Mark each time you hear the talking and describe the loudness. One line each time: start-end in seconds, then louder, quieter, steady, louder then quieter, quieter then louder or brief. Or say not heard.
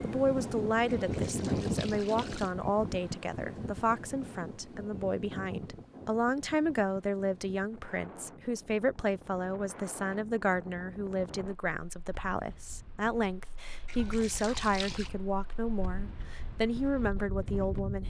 0.0-18.0 steady.